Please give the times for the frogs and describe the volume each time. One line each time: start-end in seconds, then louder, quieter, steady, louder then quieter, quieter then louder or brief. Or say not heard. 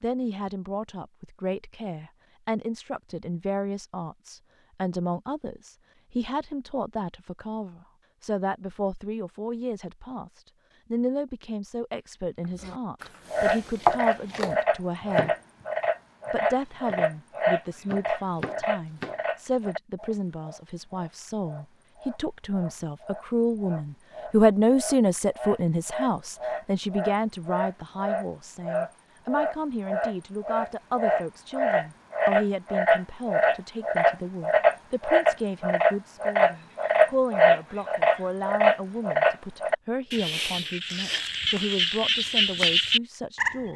13.3-43.5 quieter then louder.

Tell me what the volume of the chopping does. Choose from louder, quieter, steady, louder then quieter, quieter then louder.
quieter then louder.